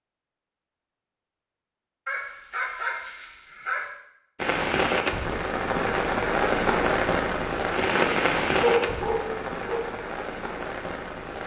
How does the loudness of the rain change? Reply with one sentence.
The loudness of the rain goes down.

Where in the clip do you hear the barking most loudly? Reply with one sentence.
The volume of the barking peaks at 9 seconds.